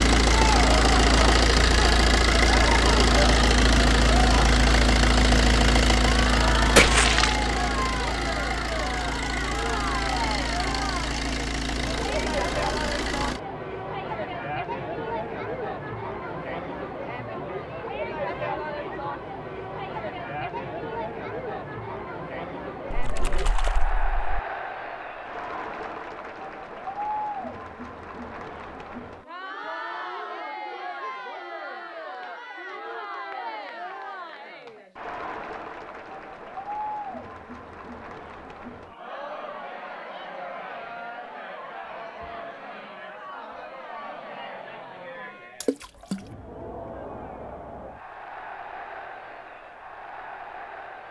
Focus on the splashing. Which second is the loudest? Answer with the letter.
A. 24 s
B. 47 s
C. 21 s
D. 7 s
D.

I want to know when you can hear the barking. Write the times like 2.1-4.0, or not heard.
not heard.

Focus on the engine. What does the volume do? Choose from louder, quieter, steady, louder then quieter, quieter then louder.
quieter.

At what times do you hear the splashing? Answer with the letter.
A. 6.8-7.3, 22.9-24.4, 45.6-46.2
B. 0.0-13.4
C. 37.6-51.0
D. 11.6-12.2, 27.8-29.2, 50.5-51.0
A.